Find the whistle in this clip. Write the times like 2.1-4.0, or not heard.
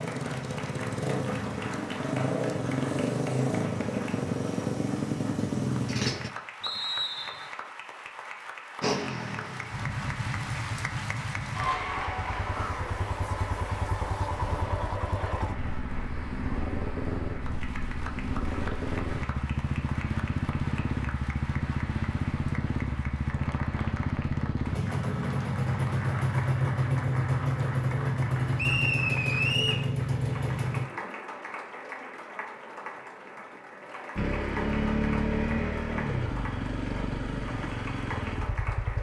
6.6-7.5, 28.6-29.9.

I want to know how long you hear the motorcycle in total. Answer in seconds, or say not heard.
33 s.